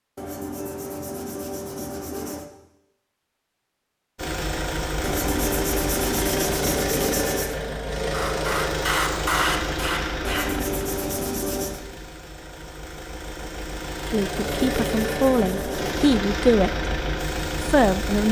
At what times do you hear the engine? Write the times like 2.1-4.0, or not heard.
4.2-18.2.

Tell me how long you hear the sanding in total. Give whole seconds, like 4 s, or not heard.
8 s.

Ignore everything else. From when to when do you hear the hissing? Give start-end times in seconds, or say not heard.
8.1-10.7.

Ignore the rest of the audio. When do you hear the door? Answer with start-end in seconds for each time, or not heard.
not heard.